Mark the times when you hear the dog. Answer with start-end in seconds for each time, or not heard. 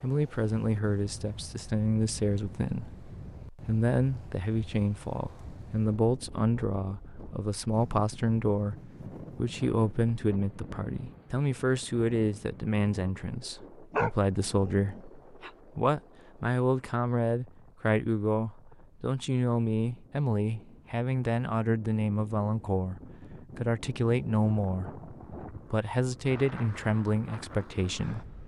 13.9-15.5.